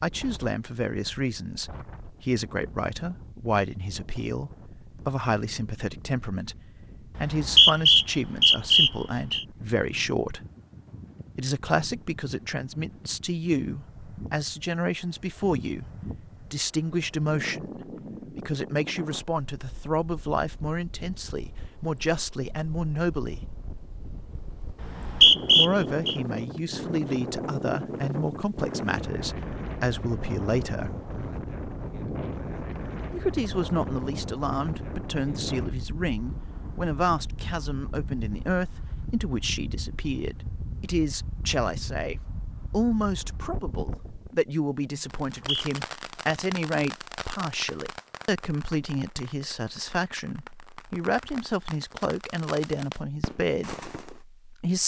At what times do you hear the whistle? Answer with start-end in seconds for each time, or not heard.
7.2-9.4, 24.8-26.1, 45.3-45.8.